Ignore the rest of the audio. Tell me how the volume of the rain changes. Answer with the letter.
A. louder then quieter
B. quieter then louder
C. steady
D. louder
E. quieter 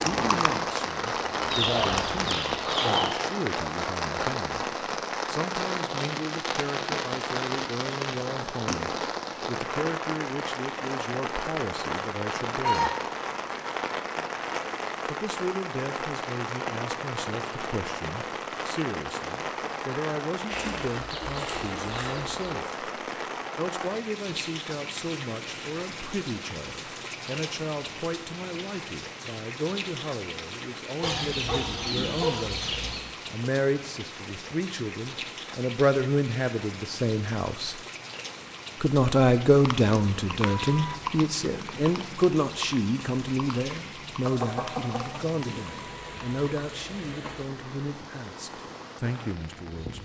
E.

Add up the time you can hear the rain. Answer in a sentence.
The rain can be heard for 50 seconds in total.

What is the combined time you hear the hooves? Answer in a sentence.
You can hear the hooves for 10 seconds altogether.